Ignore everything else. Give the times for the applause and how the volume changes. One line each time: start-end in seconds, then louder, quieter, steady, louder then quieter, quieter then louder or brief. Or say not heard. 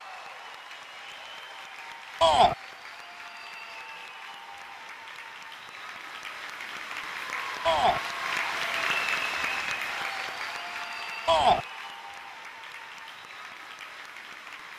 0.0-14.7 louder then quieter.